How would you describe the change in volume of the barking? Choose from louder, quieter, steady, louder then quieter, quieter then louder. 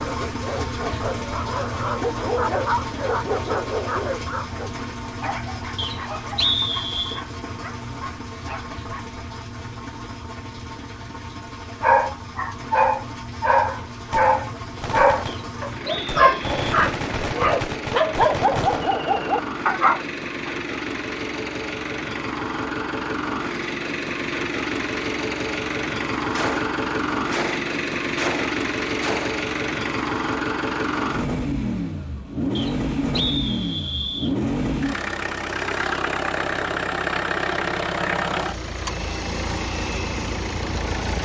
louder.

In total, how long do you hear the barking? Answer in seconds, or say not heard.
18 s.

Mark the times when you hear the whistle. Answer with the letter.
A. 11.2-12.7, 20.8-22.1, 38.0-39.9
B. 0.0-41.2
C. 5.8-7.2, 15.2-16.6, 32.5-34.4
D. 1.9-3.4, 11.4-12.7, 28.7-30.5
C.